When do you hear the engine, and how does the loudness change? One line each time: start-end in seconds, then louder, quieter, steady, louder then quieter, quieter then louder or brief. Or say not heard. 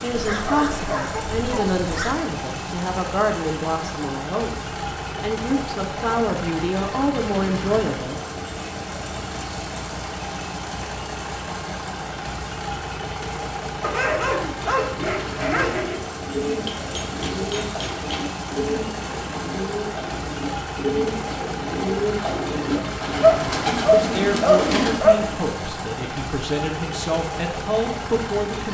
0.0-28.6 steady.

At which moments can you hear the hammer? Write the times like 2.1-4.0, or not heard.
16.6-18.4.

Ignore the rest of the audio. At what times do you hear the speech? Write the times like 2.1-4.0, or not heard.
0.0-8.2, 23.9-28.6.